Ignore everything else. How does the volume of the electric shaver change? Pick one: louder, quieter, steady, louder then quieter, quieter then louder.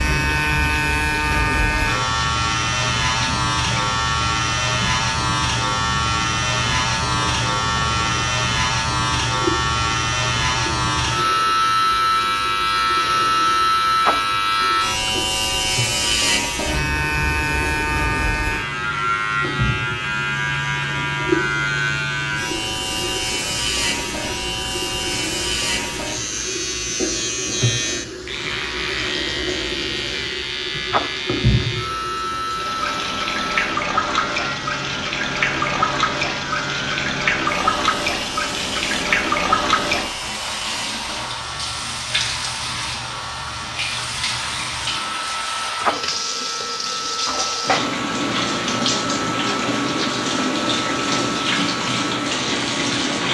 quieter.